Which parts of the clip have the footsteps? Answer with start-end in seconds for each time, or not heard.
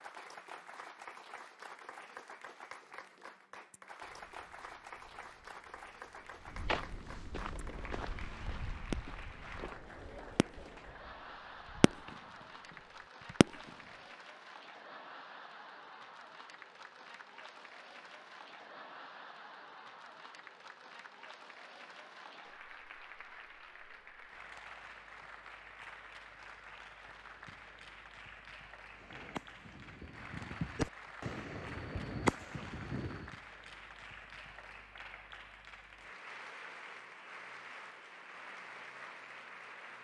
4.0-13.4.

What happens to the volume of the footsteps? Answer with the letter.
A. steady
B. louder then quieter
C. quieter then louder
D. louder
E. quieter
B.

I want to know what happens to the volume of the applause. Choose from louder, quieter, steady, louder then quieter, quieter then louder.
steady.